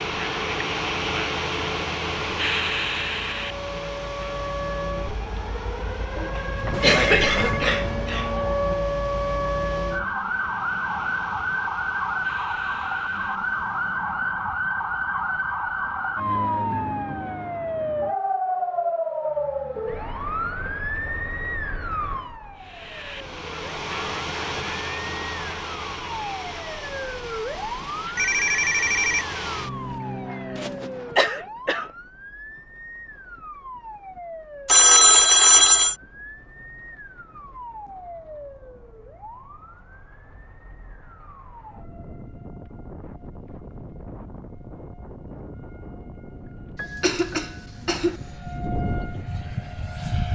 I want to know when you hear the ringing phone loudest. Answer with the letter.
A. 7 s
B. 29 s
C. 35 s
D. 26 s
C.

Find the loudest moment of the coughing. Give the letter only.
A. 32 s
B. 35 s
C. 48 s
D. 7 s
D.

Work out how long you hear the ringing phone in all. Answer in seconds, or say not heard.
4 s.